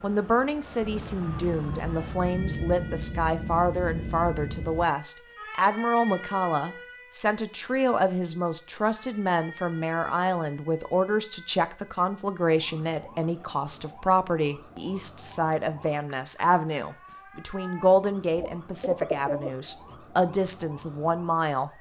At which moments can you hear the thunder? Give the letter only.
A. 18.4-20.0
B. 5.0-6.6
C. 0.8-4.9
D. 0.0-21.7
C.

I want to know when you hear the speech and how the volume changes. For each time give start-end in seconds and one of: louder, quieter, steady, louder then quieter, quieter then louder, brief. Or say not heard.
0.0-21.7 steady.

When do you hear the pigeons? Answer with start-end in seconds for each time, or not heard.
18.4-20.0.